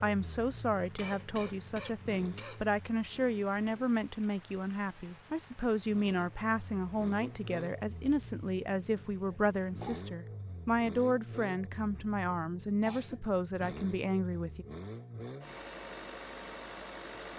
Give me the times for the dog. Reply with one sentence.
The dog can't be heard in this clip.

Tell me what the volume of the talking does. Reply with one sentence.
The volume of the talking stays about the same.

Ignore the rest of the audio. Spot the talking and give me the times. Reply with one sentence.
You can hear the talking from 0.0 to 14.7 s.